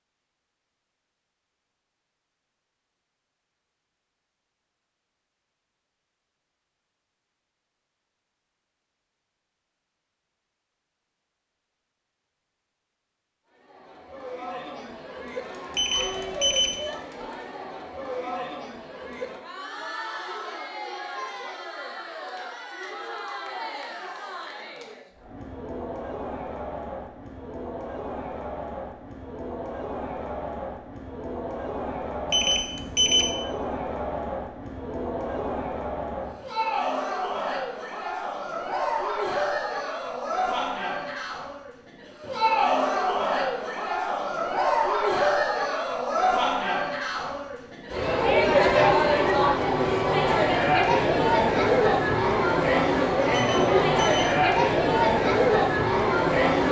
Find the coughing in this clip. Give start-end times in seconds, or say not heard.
not heard.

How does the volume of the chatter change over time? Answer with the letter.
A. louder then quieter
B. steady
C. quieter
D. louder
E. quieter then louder
D.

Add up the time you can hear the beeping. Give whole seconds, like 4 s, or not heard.
3 s.